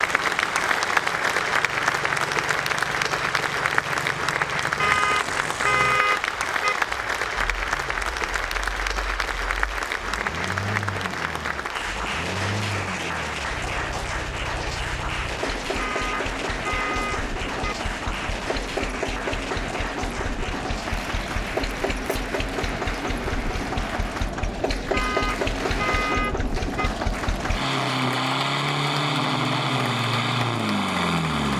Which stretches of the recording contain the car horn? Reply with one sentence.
The car horn can be heard from 4.8 to 6.8 s, from 15.8 to 17.8 s and from 24.9 to 26.9 s.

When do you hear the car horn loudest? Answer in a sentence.
The loudest moment of the car horn is at 6 seconds.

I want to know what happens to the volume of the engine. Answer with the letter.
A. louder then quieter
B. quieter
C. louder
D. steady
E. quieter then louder
C.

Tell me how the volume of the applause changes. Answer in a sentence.
The volume of the applause goes down.